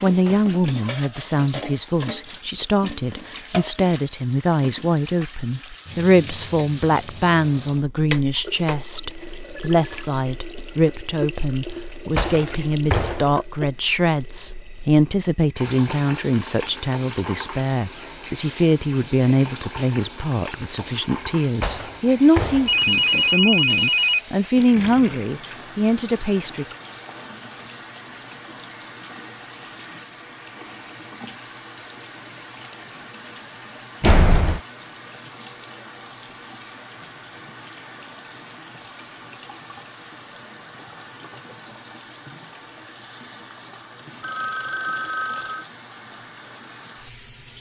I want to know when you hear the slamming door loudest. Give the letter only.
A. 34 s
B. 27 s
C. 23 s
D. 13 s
A.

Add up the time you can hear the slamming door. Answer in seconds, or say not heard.
3 s.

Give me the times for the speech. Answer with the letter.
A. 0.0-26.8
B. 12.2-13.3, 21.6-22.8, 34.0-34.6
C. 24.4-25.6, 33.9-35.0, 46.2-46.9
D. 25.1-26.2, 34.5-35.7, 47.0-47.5
A.